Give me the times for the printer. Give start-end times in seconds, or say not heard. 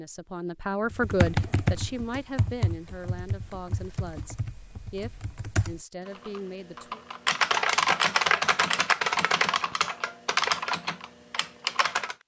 not heard.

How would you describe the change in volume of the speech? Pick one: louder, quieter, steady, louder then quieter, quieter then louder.
quieter.